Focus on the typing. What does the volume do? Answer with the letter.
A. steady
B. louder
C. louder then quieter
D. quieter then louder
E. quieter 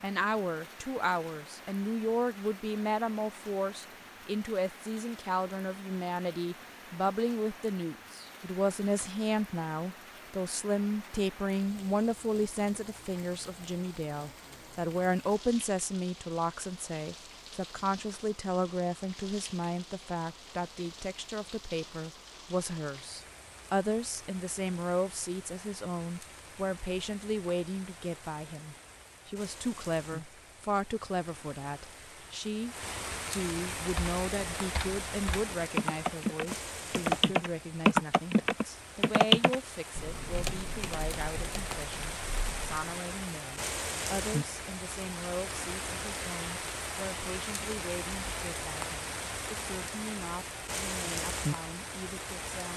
C.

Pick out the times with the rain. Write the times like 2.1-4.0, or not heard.
0.0-52.7.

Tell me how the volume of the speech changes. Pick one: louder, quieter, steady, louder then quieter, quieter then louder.
quieter.